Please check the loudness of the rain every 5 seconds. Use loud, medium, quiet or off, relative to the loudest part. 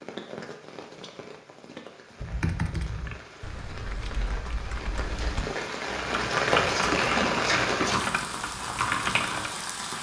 quiet, loud.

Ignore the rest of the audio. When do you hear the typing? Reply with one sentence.
The typing can be heard from 2.2 to 9.5 s.